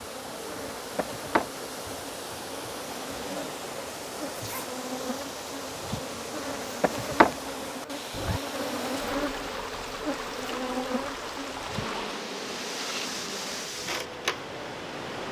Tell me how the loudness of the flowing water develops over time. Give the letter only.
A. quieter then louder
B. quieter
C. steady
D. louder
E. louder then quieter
C.